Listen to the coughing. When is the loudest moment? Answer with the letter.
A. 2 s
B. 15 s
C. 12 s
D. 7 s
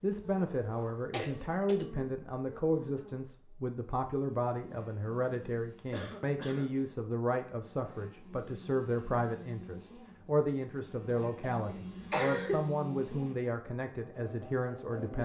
C.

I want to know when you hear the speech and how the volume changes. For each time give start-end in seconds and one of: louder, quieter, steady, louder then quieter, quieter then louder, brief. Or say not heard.
0.0-15.2 steady.